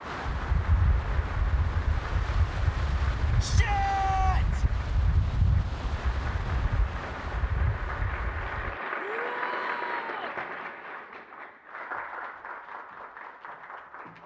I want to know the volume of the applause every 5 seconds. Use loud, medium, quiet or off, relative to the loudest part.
medium, loud, loud.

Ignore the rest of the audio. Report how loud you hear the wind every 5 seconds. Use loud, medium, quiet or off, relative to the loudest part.
loud, loud, off.